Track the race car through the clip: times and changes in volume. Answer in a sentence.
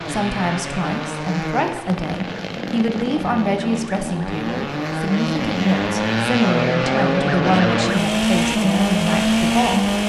You can hear the race car from 0.0 to 10.0 s, getting louder.